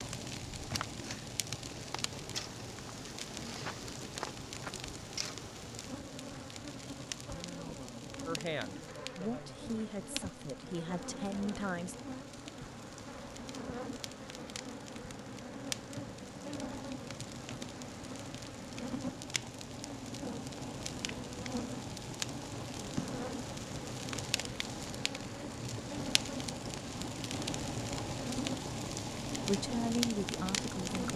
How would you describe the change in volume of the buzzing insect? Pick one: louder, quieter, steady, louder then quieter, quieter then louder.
steady.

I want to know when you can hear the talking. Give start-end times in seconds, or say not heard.
8.2-11.9, 29.4-31.1.